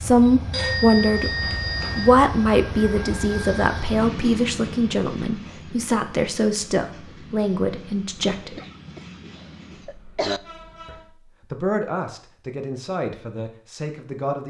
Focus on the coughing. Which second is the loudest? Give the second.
10 s.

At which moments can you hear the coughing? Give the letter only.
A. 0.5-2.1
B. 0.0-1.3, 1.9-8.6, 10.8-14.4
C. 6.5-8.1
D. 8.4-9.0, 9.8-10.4
D.